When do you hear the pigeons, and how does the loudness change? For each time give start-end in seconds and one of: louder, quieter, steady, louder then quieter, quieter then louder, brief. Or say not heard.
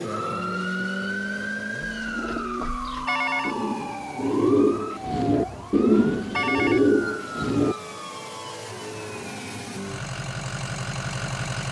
1.8-7.8 louder.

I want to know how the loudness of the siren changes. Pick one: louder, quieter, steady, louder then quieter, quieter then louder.
quieter.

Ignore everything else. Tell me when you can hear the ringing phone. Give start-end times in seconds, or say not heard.
3.0-4.0, 6.3-6.9.